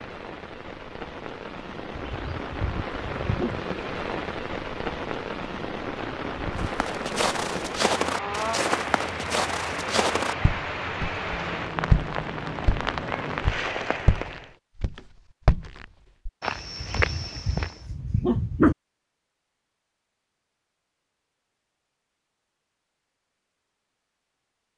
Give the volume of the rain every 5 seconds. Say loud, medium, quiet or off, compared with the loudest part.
loud, loud, loud, off, off.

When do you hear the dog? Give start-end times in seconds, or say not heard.
1.9-3.6, 16.8-18.8.